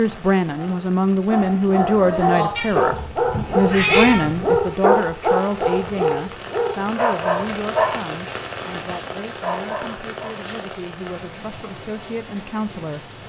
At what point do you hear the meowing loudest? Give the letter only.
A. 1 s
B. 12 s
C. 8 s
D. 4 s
D.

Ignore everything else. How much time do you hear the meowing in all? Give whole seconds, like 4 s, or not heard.
2 s.